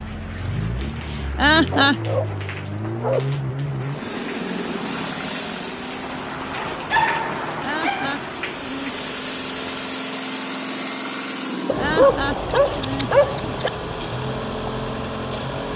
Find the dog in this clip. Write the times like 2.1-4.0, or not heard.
1.7-3.4, 6.8-8.2, 11.7-13.7.